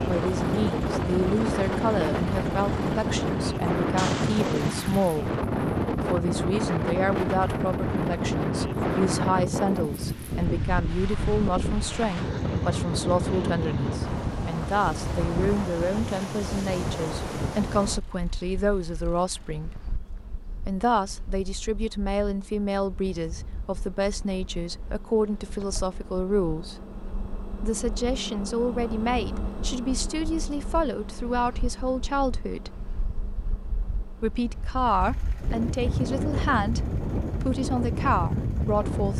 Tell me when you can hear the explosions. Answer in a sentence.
You can hear the explosions from 4.0 to 5.2 s.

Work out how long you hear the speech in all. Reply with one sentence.
The speech can be heard for 35 seconds in total.